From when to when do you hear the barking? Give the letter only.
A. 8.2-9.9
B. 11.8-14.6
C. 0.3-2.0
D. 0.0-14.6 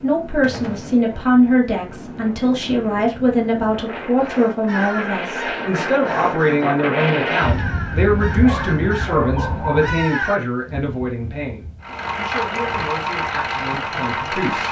A.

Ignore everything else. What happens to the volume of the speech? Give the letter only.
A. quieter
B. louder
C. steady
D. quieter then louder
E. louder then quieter
A.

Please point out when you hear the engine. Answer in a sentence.
You can hear the engine from 11.8 to 14.6 s.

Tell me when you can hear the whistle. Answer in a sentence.
You can't hear the whistle here.